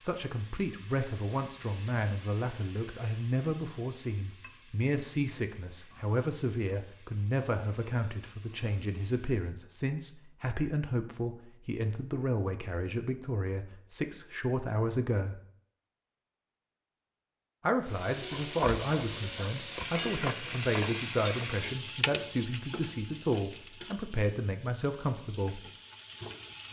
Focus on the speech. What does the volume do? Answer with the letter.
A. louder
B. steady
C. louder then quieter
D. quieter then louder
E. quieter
B.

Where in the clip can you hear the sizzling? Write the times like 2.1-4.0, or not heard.
0.0-9.6, 17.8-26.6.